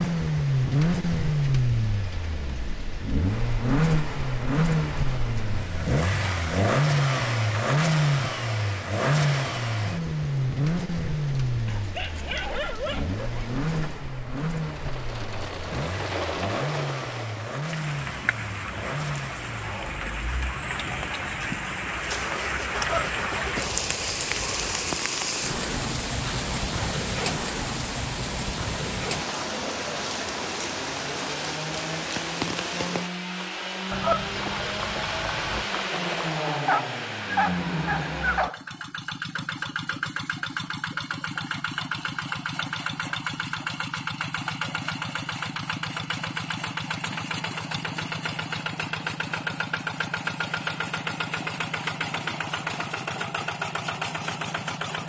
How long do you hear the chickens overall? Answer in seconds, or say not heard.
4 s.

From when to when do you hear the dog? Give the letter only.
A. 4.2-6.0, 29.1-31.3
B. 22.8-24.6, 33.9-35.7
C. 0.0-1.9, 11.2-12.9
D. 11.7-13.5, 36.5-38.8
D.